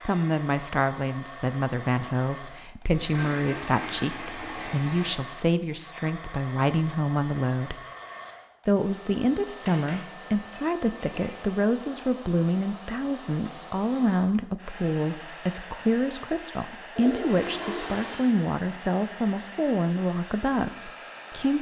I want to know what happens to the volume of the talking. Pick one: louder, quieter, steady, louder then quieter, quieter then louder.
steady.